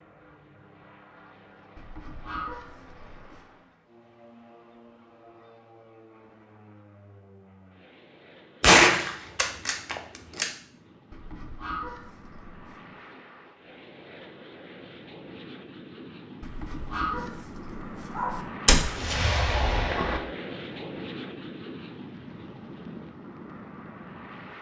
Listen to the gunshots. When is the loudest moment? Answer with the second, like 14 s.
9 s.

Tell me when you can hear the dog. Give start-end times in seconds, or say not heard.
1.8-3.5, 11.1-12.8, 16.4-18.4.